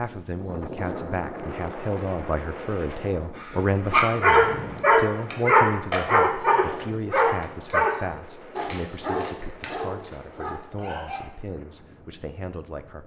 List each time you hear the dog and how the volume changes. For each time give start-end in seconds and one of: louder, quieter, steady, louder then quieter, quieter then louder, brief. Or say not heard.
3.4-11.3 quieter.